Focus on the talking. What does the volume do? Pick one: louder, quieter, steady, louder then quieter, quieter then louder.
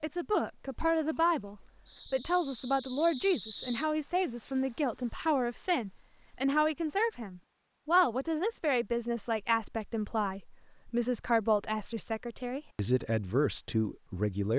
steady.